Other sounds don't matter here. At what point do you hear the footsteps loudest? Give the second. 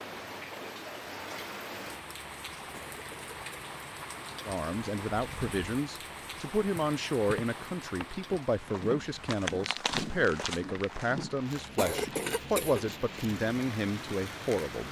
10 s.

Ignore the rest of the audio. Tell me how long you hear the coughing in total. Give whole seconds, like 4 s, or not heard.
2 s.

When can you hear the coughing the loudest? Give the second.
12 s.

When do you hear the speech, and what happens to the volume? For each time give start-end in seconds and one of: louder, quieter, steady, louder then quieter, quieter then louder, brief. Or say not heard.
4.5-14.8 steady.